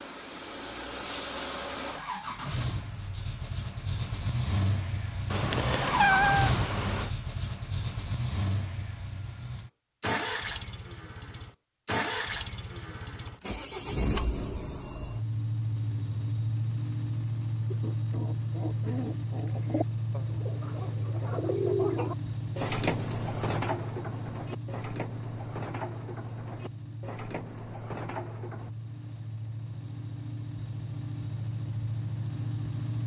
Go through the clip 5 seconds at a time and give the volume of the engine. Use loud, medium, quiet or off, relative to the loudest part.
loud, loud, loud, loud, loud, medium, loud.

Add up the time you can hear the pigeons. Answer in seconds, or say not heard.
11 s.